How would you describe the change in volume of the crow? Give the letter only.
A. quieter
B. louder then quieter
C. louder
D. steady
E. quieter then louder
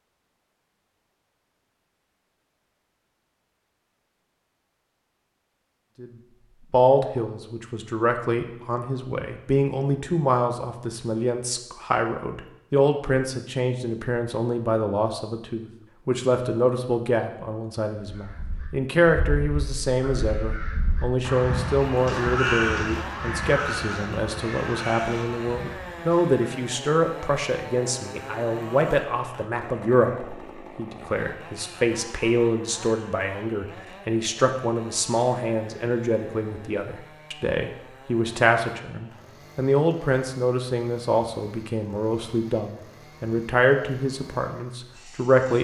B.